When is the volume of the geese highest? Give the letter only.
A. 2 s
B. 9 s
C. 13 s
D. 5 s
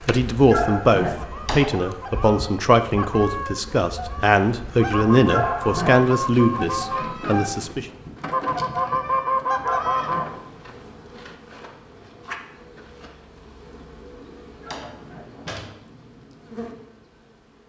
B.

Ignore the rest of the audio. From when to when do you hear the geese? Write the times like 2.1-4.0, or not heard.
1.0-10.3.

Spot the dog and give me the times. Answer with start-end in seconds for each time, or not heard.
0.4-1.1, 5.2-5.9, 9.6-10.2, 14.5-15.2.